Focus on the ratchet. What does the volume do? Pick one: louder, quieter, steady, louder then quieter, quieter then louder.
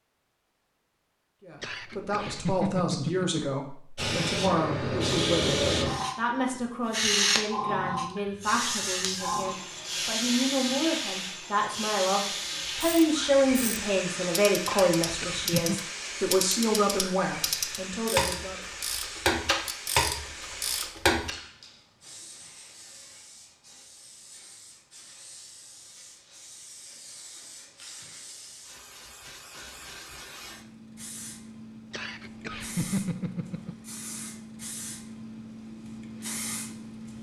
louder.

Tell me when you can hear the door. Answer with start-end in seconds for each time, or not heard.
not heard.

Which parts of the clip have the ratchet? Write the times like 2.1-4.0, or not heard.
12.7-21.3.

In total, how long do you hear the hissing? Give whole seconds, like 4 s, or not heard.
33 s.